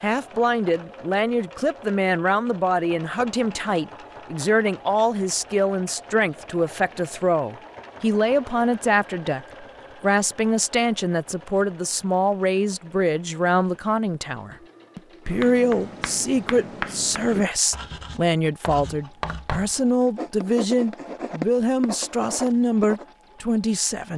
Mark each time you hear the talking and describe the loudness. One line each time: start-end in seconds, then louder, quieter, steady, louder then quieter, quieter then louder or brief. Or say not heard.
0.0-24.1 steady.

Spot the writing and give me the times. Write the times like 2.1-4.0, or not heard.
15.2-23.1.